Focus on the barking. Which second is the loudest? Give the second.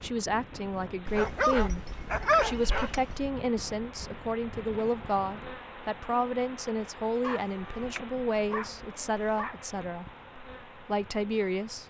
2 s.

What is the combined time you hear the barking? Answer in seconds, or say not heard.
5 s.